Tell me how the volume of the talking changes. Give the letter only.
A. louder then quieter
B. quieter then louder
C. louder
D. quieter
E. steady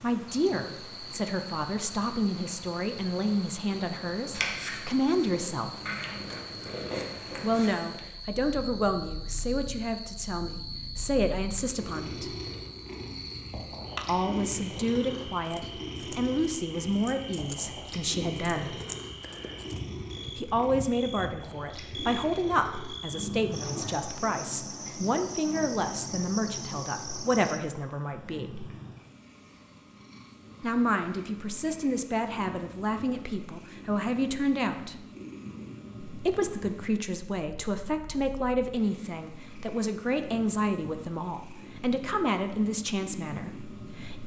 E.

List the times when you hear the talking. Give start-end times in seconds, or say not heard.
0.0-5.8, 7.4-12.3, 14.1-18.8, 20.4-28.6, 30.6-35.0, 36.0-44.2.